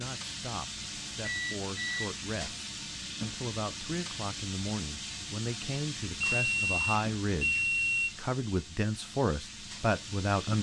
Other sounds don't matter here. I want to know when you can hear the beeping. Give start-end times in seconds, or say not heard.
0.9-2.1, 6.2-8.1.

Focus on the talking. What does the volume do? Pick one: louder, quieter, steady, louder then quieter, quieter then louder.
louder.